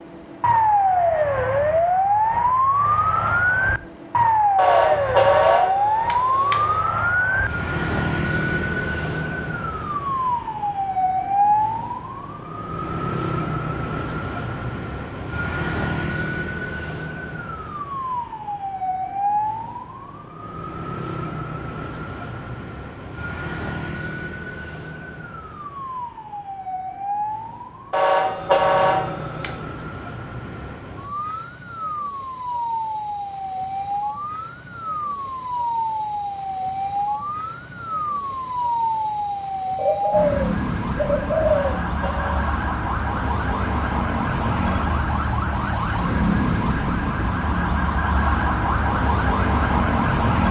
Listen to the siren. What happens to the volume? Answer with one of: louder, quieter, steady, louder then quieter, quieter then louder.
quieter then louder.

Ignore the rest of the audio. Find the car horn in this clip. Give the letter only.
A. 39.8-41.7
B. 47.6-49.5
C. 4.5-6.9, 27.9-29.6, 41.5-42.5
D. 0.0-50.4
C.